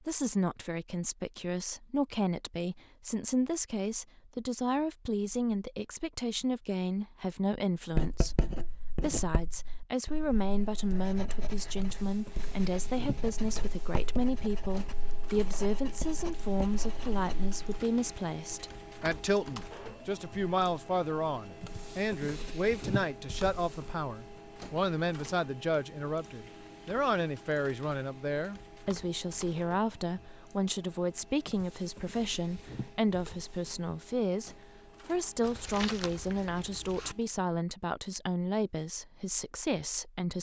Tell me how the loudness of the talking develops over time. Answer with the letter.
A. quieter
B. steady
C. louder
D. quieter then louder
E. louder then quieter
B.